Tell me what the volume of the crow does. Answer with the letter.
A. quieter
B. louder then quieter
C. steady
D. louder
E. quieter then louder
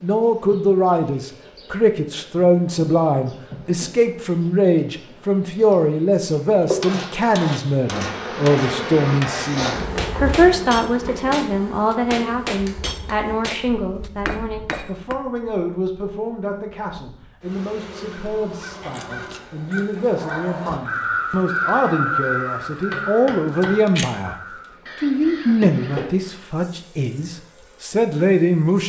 B.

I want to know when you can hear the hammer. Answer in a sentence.
You can hear the hammer from 6.8 to 15.2 s.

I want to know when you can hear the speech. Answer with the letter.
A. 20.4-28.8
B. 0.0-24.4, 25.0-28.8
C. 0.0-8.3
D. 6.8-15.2
B.